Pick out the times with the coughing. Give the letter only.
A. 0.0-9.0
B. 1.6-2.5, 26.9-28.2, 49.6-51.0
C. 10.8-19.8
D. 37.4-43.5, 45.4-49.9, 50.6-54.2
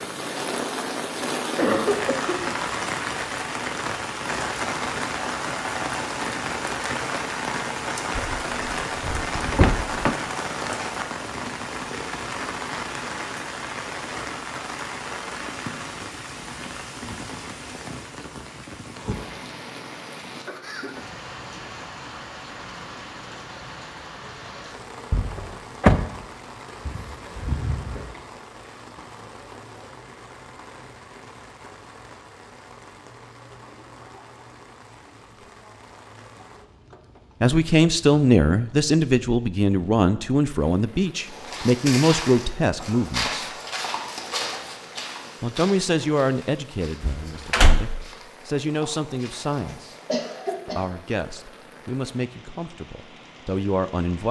B.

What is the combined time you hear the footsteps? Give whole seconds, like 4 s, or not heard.
9 s.